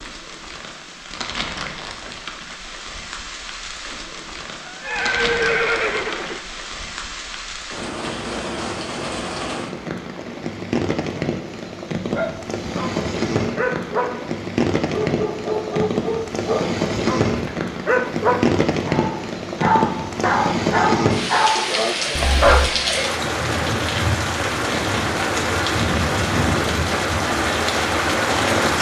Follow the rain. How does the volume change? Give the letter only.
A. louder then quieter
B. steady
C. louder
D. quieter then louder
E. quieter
C.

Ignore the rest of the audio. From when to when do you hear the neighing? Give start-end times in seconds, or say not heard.
4.7-6.4, 22.1-22.7.